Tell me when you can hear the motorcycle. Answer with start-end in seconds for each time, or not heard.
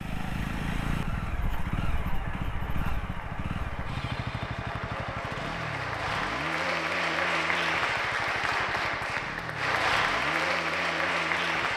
0.0-11.7.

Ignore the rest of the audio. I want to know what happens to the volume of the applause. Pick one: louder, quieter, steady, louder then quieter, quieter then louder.
louder.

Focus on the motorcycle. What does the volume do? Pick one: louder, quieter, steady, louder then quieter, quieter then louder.
quieter.